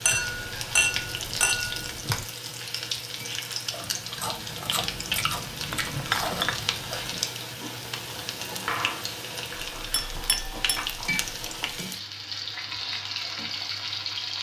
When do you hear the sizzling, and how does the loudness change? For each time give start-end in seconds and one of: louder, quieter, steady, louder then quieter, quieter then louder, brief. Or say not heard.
0.0-14.3 steady.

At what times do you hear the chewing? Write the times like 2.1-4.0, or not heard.
3.7-11.7.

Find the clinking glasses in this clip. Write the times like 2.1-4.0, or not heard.
0.1-2.2, 5.7-6.7, 9.9-10.9.